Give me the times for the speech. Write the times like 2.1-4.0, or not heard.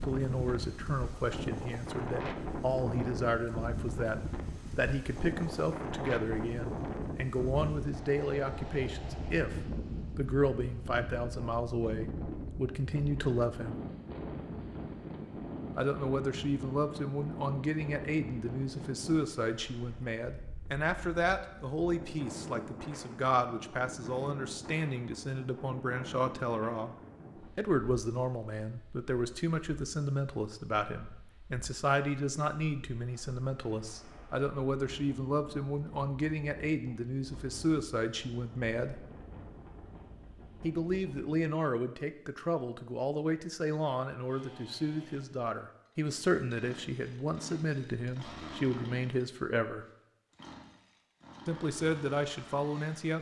0.0-13.8, 15.8-26.9, 27.6-39.0, 40.6-49.9, 51.5-53.1.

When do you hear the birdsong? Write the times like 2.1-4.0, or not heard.
not heard.